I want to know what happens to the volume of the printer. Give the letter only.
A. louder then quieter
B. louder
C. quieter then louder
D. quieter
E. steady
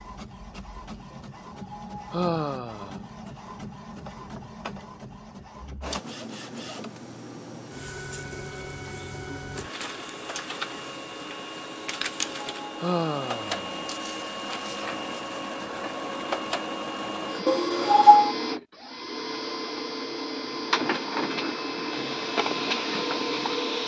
B.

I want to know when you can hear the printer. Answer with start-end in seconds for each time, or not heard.
0.0-23.8.